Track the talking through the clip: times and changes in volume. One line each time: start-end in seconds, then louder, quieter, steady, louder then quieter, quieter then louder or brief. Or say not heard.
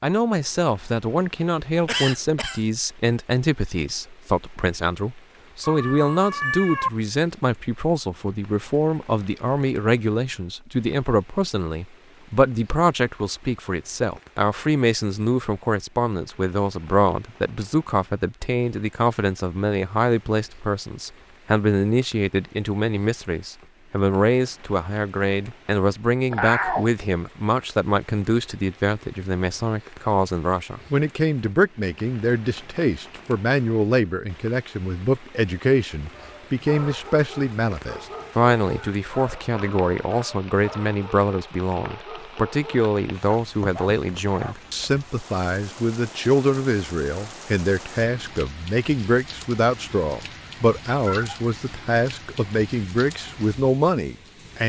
0.0-54.6 steady.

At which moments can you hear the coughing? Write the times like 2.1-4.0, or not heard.
1.9-2.6.